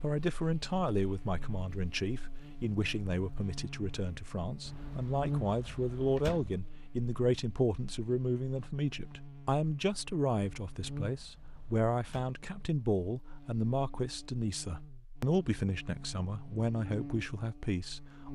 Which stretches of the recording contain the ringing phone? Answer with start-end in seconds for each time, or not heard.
not heard.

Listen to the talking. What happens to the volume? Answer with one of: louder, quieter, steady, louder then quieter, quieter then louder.
steady.